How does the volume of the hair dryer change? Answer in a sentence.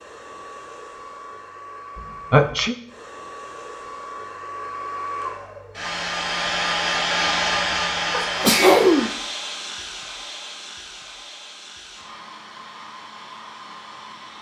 The loudness of the hair dryer goes up, then down.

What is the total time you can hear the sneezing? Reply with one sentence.
The sneezing can be heard for 2 seconds in total.